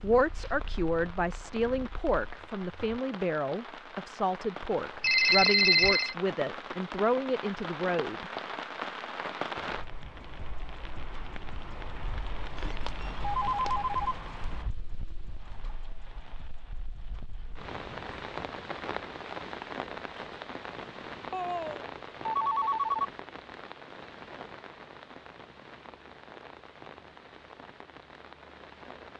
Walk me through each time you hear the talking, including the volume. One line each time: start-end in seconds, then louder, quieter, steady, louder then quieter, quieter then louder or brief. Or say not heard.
0.0-8.3 steady.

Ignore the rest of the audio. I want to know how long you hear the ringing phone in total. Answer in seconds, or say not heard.
4 s.